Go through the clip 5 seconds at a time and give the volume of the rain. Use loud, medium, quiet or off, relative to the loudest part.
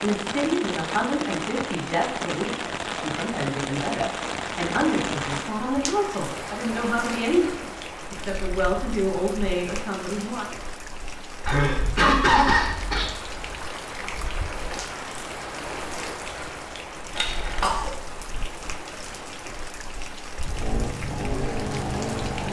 loud, loud, medium, medium, medium.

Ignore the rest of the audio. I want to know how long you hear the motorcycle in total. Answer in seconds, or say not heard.
2 s.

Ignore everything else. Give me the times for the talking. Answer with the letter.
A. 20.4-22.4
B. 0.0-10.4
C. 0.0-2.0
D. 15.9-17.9
B.